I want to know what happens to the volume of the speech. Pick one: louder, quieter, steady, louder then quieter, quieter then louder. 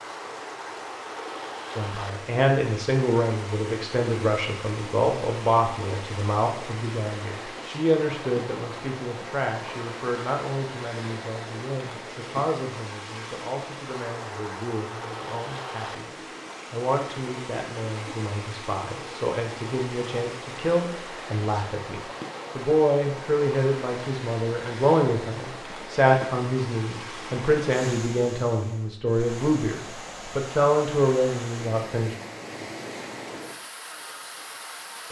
quieter then louder.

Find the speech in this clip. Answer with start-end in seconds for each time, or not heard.
1.8-32.1.